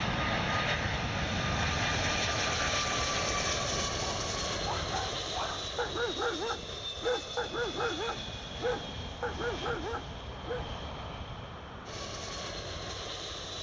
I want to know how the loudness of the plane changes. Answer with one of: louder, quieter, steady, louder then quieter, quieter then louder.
quieter.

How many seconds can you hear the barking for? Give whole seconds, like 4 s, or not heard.
7 s.